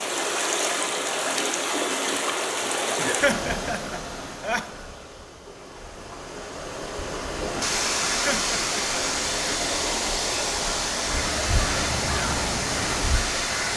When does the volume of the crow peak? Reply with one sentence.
The loudest moment of the crow is at 12 seconds.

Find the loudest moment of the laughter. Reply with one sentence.
The volume of the laughter peaks at 3 seconds.